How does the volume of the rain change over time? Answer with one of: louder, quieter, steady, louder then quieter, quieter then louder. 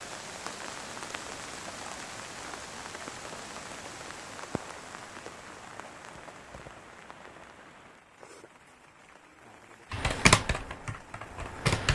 quieter.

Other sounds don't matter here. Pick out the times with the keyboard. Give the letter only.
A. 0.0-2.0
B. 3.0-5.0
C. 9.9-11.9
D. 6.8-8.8
C.